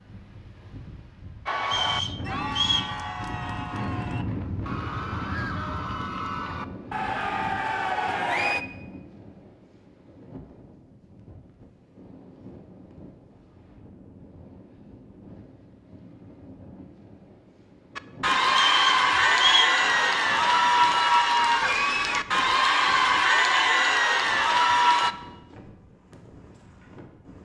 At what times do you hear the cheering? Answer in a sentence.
The cheering can be heard from 1.4 to 8.7 s and from 17.9 to 25.1 s.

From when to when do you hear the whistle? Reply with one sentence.
The whistle can be heard from 1.6 to 3.0 s and from 18.5 to 19.8 s.